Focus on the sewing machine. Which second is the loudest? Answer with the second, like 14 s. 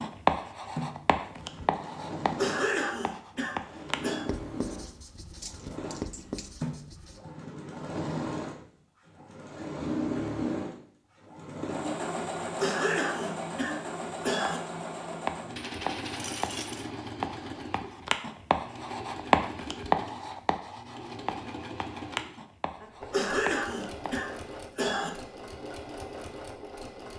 10 s.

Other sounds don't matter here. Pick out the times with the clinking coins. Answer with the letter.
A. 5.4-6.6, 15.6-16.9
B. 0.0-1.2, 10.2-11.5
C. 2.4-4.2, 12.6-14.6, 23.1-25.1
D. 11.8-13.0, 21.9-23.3
A.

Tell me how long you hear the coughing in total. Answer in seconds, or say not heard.
6 s.